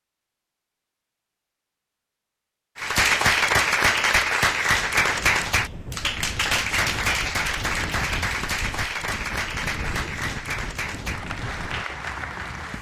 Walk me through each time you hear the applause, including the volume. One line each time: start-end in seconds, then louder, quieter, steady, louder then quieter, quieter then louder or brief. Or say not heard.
2.8-12.7 quieter.